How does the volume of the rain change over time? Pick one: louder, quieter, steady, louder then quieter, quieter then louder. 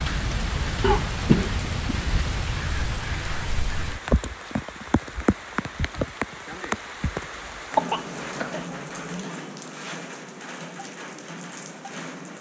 quieter.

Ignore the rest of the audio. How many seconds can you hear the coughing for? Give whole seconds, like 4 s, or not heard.
3 s.